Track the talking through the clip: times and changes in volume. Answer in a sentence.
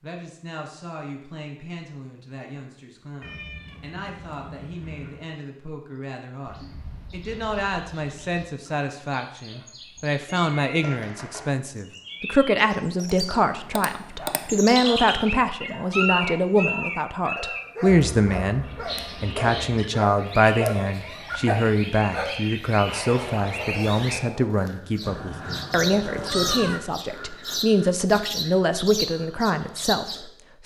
You can hear the talking from 0.0 to 30.6 s, getting louder.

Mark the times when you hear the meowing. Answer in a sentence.
You can hear the meowing from 3.2 to 5.2 s, from 10.2 to 10.8 s and from 25.1 to 26.8 s.